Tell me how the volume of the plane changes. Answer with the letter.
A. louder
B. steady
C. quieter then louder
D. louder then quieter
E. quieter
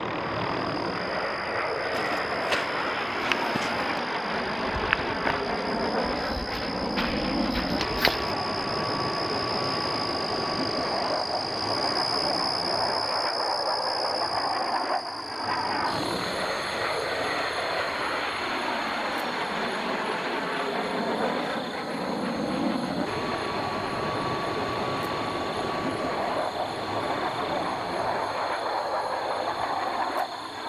B.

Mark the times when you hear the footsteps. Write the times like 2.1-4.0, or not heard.
1.9-8.3.